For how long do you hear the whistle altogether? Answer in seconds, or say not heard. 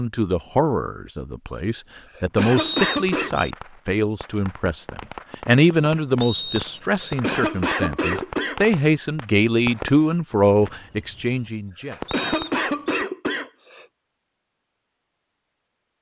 3 s.